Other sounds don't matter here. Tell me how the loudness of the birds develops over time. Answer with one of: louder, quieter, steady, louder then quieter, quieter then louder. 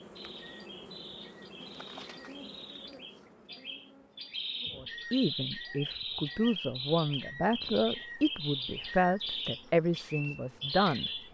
louder.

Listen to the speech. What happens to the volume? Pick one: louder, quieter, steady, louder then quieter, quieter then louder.
steady.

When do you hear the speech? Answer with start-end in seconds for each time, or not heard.
4.8-11.1.